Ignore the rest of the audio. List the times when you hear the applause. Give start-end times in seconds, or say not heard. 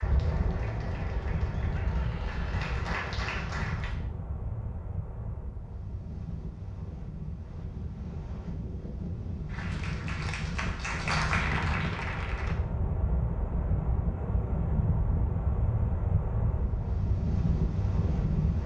0.0-4.0, 9.4-12.6.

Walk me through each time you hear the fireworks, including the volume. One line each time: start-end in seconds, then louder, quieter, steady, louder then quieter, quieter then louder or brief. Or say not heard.
not heard.